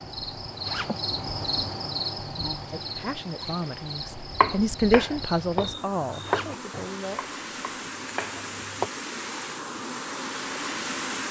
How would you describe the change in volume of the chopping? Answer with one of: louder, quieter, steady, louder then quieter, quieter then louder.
quieter then louder.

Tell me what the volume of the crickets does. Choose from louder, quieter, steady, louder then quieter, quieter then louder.
quieter.